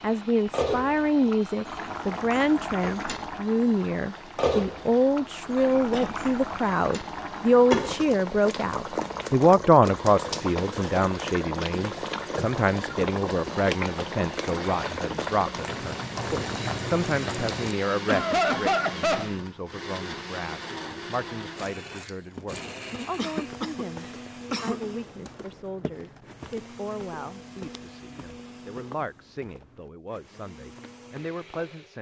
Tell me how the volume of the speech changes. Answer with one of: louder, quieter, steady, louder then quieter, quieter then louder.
quieter.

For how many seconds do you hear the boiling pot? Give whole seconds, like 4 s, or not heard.
18 s.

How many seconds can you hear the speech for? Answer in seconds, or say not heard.
32 s.